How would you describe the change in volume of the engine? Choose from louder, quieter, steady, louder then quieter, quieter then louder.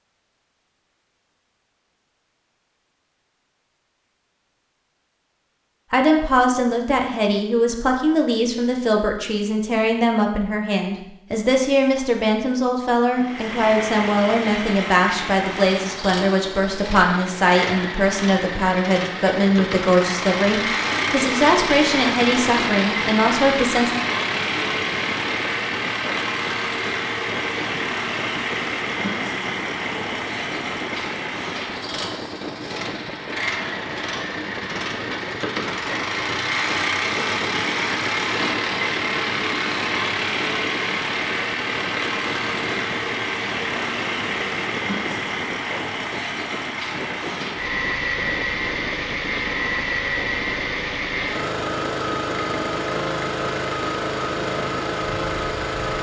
steady.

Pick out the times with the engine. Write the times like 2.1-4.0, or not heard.
13.2-55.9.